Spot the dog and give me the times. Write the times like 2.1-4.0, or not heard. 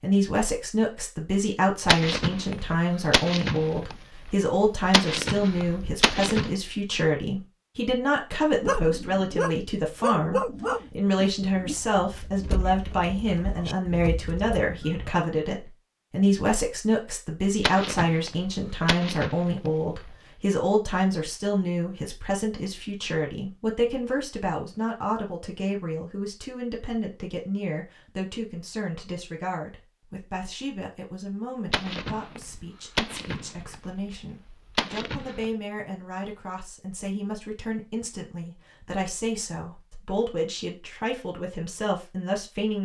8.6-15.1.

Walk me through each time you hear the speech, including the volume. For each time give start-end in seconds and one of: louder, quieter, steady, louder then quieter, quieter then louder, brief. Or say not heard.
0.0-42.8 quieter.